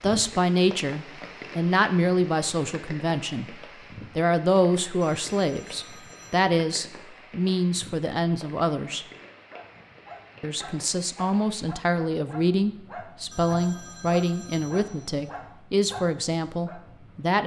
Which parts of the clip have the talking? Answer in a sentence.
The talking can be heard from 0.0 to 9.1 s and from 10.4 to 17.4 s.